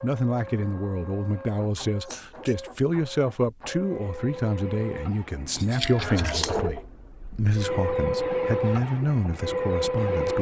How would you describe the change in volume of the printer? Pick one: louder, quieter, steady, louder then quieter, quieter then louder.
louder.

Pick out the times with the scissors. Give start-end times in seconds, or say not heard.
2.0-2.5, 5.5-6.6.